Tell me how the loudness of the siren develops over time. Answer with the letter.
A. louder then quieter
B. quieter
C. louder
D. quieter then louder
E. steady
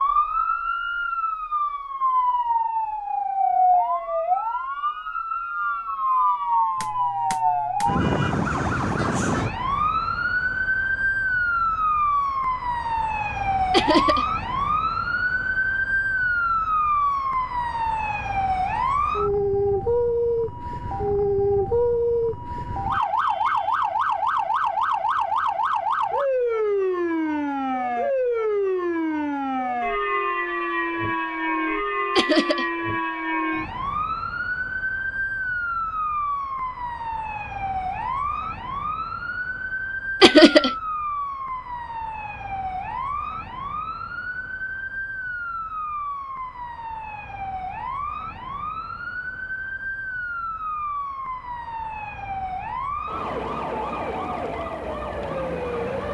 B.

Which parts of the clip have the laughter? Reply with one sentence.
The laughter can be heard from 13.7 to 14.2 s, from 32.1 to 32.6 s and from 40.2 to 40.7 s.